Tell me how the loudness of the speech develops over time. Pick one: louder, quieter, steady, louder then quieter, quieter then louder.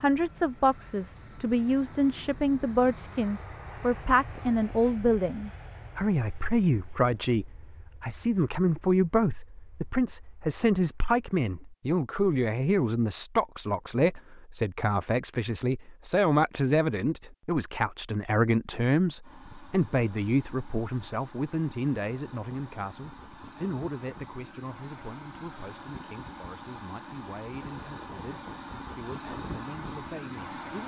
quieter.